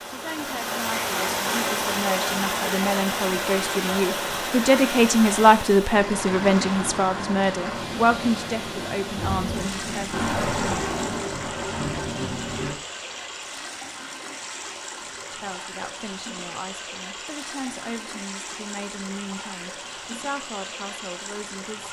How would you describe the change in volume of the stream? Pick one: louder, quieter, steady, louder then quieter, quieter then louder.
quieter.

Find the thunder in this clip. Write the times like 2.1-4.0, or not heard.
9.2-12.8.